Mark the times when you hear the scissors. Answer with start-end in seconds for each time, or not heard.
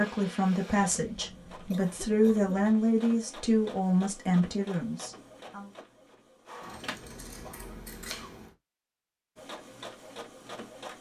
6.6-8.6.